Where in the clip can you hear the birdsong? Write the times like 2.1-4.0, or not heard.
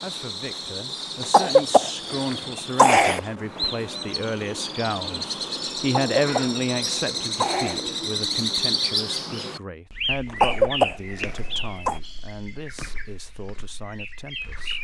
0.0-14.8.